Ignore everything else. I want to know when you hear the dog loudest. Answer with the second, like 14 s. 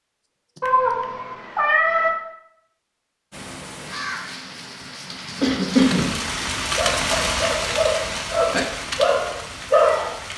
10 s.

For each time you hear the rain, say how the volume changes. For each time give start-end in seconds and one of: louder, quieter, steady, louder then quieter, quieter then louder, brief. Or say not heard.
3.3-10.3 louder then quieter.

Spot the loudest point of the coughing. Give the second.
6 s.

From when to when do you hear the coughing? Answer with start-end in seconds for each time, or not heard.
0.6-1.1, 5.4-6.6.